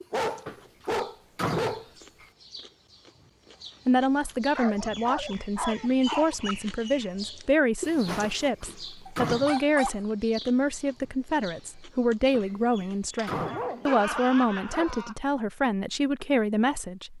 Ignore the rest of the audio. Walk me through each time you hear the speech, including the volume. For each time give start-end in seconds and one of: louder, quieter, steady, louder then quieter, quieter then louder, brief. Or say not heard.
3.9-17.1 steady.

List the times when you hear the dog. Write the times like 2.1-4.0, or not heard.
0.1-1.9, 4.5-6.5, 9.1-10.0, 13.2-15.2.